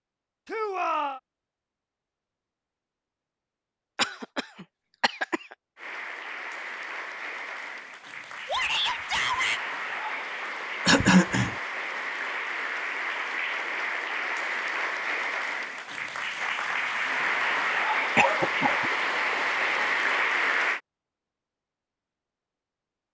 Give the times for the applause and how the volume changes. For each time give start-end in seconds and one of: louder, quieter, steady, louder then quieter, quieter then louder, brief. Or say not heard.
5.8-20.8 louder.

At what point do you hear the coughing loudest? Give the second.
11 s.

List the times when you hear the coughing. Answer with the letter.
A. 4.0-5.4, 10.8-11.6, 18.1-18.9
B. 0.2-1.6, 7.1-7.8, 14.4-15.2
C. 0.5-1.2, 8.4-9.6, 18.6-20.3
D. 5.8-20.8
A.